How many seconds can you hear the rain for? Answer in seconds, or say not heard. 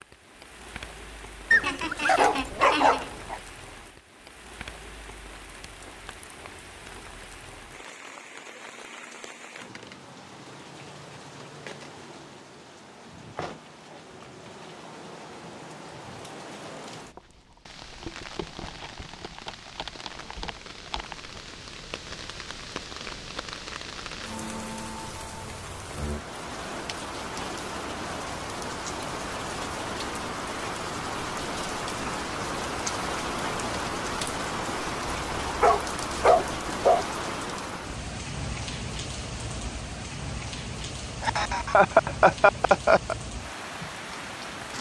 45 s.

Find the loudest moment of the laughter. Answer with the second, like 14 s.
42 s.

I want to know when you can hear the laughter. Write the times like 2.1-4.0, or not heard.
1.6-3.1, 41.2-43.1.